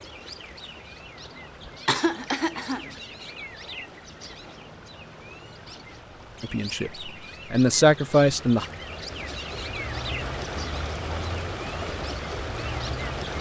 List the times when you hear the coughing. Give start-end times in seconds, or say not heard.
1.9-3.0.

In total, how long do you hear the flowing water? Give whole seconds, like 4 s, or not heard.
13 s.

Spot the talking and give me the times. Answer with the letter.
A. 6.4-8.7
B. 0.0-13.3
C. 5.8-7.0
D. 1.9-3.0
A.